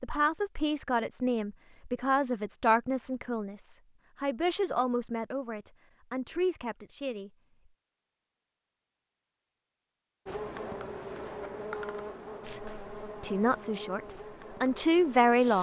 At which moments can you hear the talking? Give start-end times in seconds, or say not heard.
0.0-7.3, 12.4-15.5.